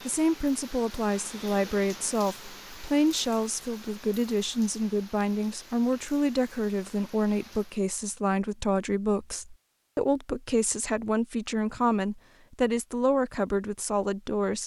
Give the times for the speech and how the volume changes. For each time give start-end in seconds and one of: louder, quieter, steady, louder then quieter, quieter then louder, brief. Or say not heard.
0.1-14.6 steady.